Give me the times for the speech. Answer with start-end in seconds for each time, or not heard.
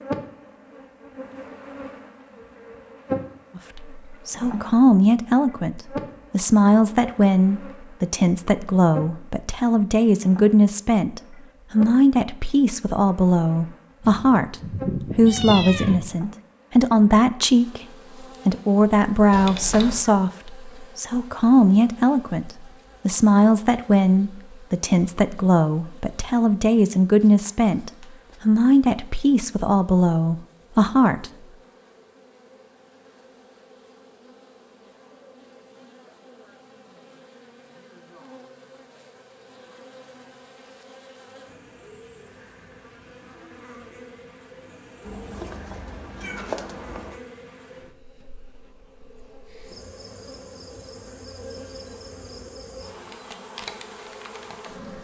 3.5-14.6, 15.2-17.8, 18.4-31.2.